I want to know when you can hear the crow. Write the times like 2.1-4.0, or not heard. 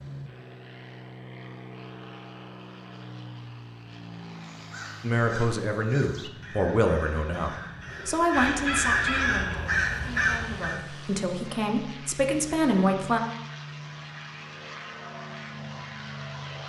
4.3-10.8.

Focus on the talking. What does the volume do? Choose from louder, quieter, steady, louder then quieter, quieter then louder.
quieter then louder.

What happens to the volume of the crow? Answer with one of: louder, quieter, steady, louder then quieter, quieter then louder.
louder.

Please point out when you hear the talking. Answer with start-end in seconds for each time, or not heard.
5.0-13.2.